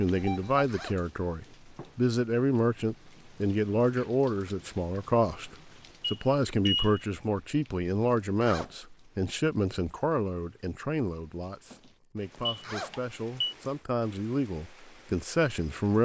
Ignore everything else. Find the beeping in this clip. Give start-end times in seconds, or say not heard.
0.1-0.6, 6.0-7.0, 12.4-13.6.